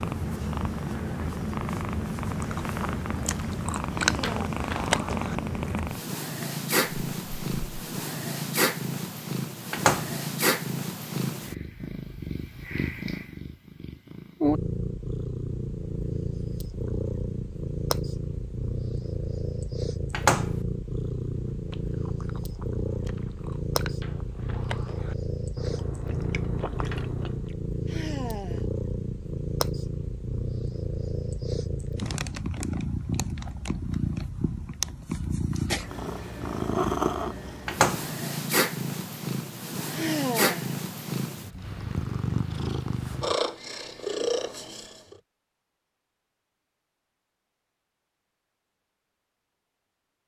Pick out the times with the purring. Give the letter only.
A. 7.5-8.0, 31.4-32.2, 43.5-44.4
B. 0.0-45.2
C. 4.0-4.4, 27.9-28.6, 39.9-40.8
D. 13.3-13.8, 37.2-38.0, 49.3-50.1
B.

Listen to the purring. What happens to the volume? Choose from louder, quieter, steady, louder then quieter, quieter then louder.
steady.